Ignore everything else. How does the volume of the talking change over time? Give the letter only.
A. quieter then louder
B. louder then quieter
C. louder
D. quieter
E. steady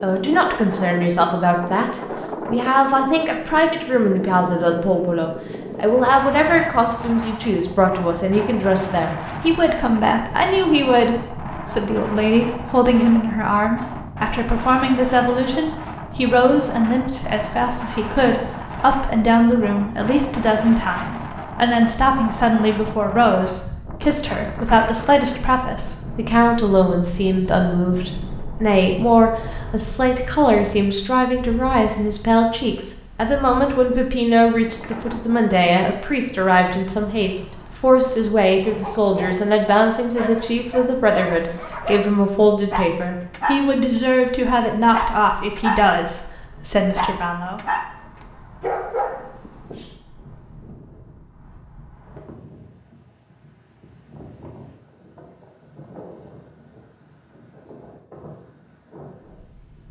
E.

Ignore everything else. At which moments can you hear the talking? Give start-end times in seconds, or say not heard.
0.0-47.6.